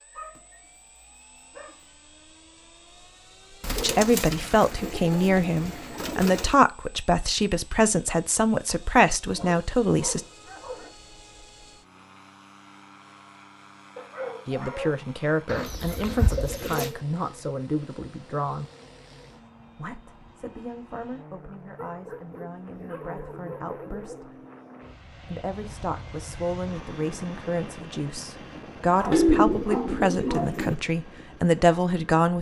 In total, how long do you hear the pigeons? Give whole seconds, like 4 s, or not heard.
6 s.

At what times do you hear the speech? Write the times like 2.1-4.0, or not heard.
3.8-10.2, 14.4-18.6, 19.8-24.4, 25.1-32.3.